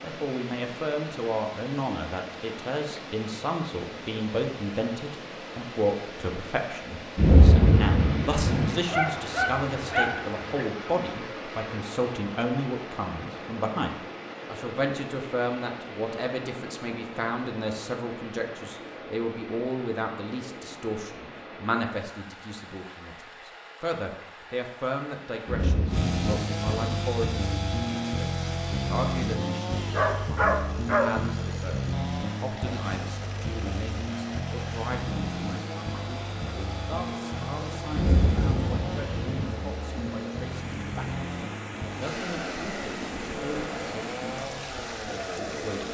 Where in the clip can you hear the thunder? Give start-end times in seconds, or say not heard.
7.2-8.7, 25.4-27.0, 37.9-39.5.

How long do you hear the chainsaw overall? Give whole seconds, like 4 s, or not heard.
20 s.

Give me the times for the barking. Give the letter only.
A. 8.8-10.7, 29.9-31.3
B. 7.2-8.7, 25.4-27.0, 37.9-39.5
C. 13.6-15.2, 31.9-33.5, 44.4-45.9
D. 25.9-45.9
A.